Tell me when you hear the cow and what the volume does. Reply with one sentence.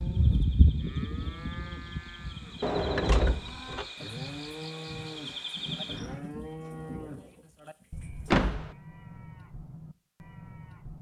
The cow can be heard from 0.0 to 10.9 s, getting quieter.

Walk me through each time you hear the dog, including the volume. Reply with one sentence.
The dog can't be heard in this clip.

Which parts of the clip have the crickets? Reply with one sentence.
You can hear the crickets from 0.0 to 6.2 s.